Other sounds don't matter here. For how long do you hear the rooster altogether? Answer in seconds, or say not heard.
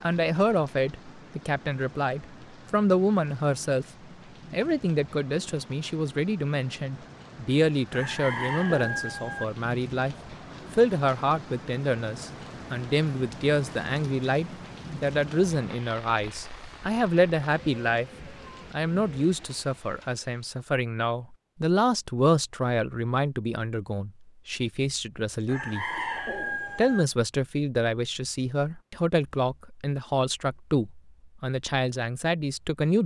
3 s.